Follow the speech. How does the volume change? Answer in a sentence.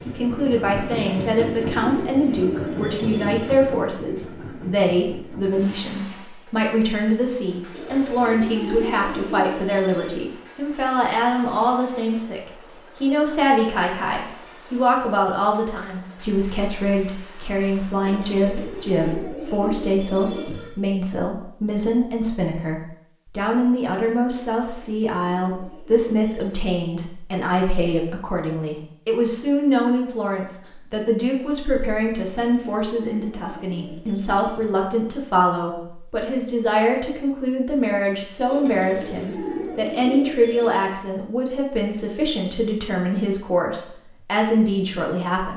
The volume of the speech stays about the same.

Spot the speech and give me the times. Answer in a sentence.
The speech can be heard from 0.1 to 45.5 s.